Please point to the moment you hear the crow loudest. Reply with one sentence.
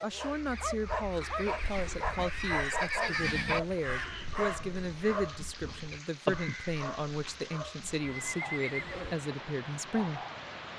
The volume of the crow peaks at 6 seconds.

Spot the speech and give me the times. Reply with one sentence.
You can hear the speech from 0.0 to 10.2 s.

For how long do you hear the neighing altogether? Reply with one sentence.
The neighing can be heard for 3 seconds in total.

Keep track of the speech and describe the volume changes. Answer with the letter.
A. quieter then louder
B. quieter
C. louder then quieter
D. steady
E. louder
D.